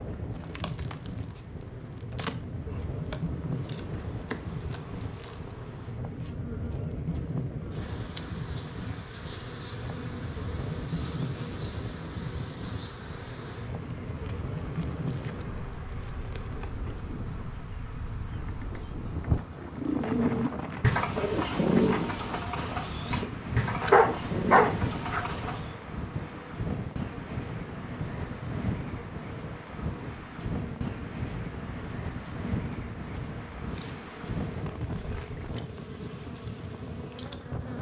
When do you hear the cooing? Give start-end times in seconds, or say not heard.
19.7-25.7.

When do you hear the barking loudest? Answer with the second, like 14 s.
24 s.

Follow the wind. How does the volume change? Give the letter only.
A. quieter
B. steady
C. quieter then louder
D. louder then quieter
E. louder
B.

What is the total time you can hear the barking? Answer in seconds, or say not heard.
2 s.